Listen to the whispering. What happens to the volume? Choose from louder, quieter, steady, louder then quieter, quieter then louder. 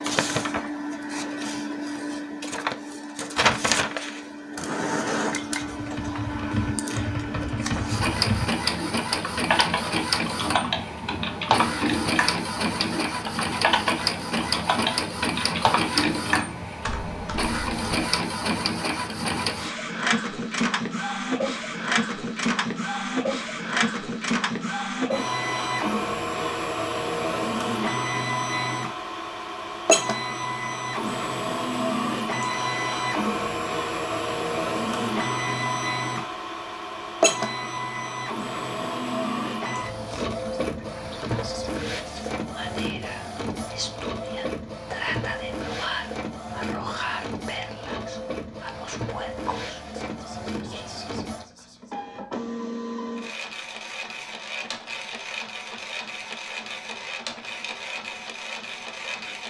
louder then quieter.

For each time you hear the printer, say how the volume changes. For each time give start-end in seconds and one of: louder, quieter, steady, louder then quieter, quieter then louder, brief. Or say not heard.
0.0-59.4 quieter.